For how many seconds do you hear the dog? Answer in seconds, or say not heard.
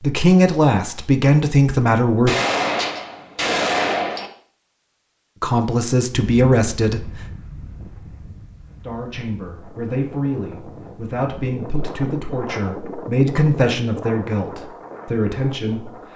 not heard.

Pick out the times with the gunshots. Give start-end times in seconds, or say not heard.
2.2-4.3.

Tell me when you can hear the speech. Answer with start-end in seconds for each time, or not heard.
0.0-2.4, 5.4-7.1, 8.8-16.1.